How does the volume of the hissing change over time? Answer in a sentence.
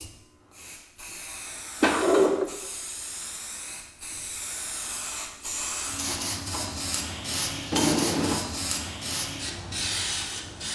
The loudness of the hissing goes up.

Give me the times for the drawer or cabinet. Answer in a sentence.
The drawer or cabinet can be heard from 1.8 to 2.5 s and from 7.7 to 8.4 s.